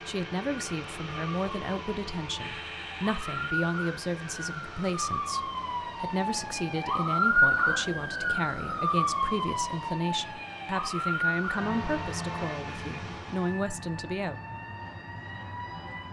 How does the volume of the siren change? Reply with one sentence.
The volume of the siren goes up, then down.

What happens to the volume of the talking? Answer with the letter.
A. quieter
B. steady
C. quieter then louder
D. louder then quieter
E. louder
B.